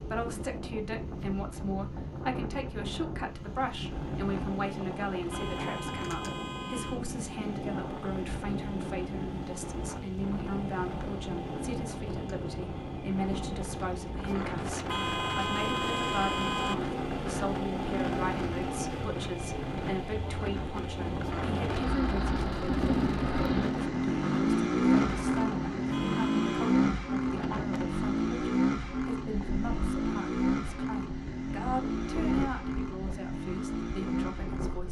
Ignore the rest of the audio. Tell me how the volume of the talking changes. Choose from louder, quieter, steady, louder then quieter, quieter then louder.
steady.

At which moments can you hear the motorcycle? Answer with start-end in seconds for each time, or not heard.
0.0-34.8.